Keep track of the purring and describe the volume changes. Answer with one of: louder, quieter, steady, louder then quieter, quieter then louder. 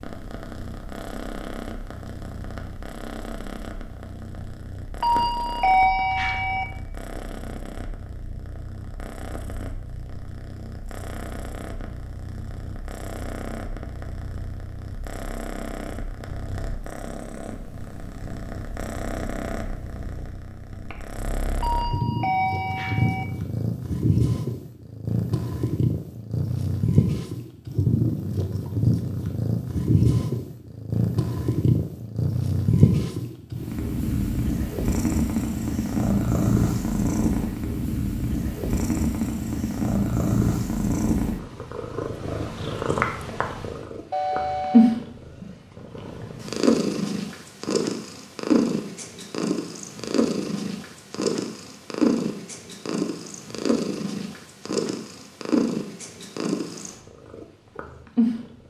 louder.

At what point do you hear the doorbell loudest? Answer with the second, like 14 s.
6 s.